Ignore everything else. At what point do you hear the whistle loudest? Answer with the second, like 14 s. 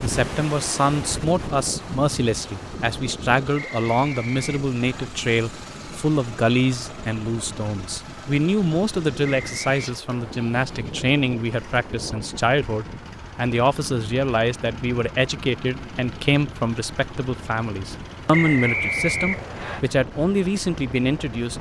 19 s.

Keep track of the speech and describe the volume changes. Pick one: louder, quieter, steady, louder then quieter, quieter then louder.
steady.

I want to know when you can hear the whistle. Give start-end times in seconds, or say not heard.
3.5-5.0, 9.3-9.8, 18.3-19.8.